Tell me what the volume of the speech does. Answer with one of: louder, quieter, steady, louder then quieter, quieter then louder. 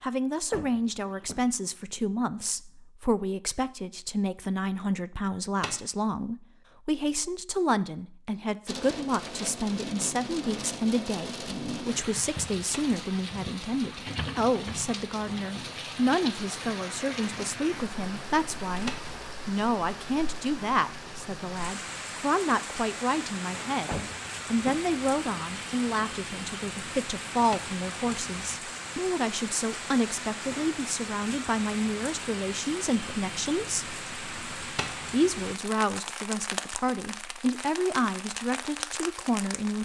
steady.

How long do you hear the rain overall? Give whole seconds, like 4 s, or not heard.
31 s.